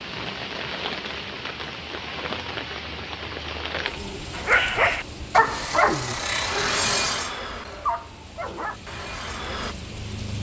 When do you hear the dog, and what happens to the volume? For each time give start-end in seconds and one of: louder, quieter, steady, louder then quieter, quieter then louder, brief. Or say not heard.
4.3-9.8 quieter.